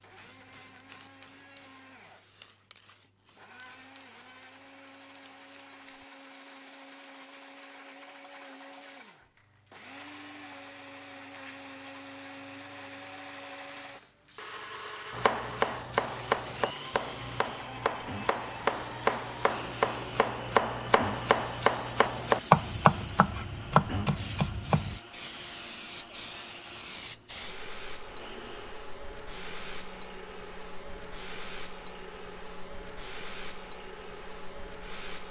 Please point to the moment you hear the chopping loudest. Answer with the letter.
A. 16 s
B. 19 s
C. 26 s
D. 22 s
D.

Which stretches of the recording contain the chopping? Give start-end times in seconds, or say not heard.
15.1-25.0.